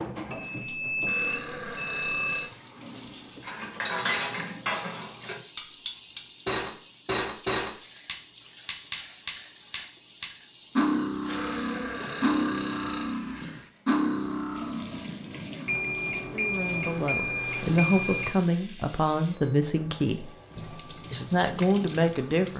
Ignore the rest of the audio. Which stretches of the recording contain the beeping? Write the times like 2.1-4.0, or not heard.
0.3-2.3, 15.7-18.3.